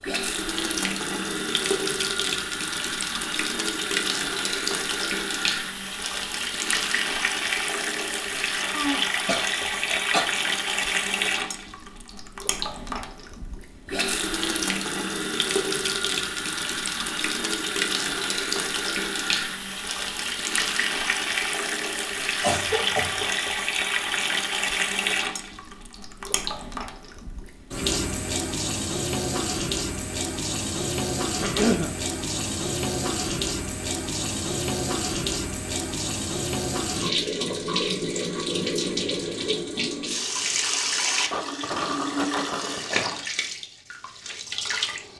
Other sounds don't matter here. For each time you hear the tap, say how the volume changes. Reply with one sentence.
The tap can be heard from 0.0 to 45.1 s, at a steady volume.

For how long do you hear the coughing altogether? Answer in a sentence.
You can hear the coughing for 3 seconds altogether.